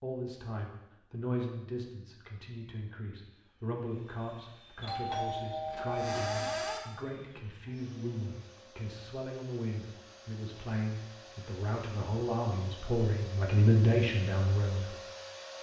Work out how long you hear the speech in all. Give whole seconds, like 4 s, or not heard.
15 s.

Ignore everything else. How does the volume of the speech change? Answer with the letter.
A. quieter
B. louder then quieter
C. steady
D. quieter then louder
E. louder
E.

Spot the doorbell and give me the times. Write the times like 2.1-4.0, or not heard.
4.8-6.8.